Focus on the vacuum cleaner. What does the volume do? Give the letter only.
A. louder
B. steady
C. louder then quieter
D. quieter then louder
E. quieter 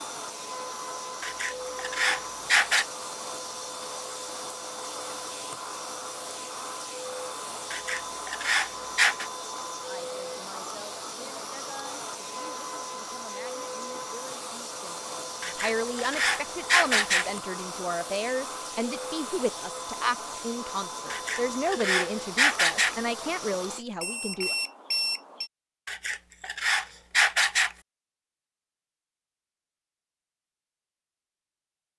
B.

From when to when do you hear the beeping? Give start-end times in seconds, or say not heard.
24.0-25.5.